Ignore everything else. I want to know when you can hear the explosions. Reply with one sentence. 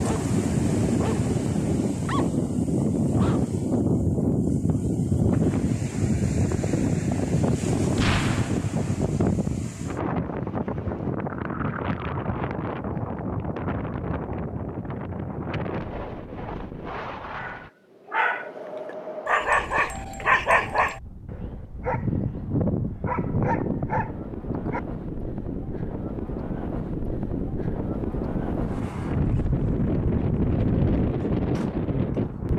You can hear the explosions from 8.0 to 9.0 s.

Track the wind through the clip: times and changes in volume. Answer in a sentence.
You can hear the wind from 0.0 to 32.5 s, getting quieter then louder.